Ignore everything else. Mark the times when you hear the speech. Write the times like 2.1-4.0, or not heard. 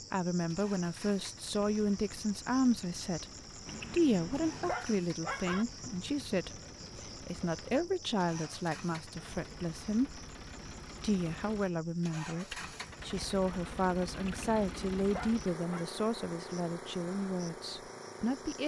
0.1-3.2, 3.9-10.2, 11.0-18.6.